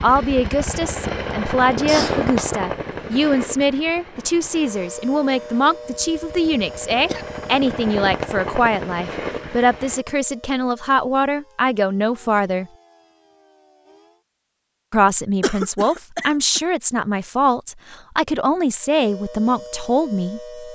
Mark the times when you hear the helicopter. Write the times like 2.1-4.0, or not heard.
0.0-10.1.